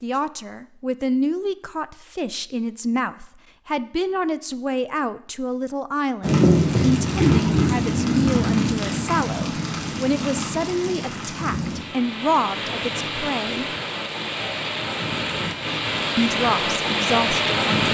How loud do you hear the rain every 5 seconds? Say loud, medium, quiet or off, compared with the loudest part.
off, loud, medium, loud.